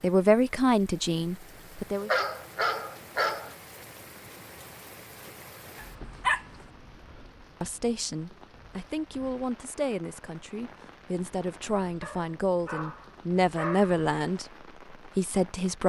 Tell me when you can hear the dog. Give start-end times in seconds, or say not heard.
2.0-3.5, 5.8-6.5, 12.0-13.9.